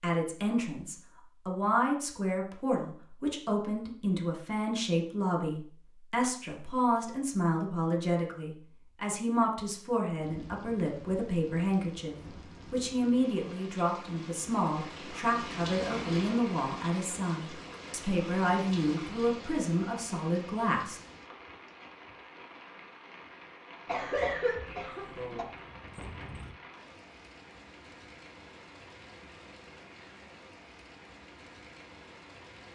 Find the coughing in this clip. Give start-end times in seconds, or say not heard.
23.9-25.4.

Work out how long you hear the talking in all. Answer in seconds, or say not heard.
21 s.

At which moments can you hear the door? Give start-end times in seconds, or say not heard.
24.6-26.6.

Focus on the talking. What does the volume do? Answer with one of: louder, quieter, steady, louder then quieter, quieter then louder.
steady.